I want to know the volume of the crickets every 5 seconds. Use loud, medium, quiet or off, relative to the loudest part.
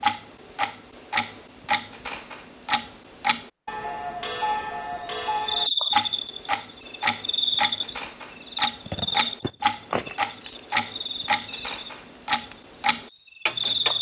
off, loud, loud.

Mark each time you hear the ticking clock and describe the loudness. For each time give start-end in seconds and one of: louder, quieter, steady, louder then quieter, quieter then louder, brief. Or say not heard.
0.0-13.9 steady.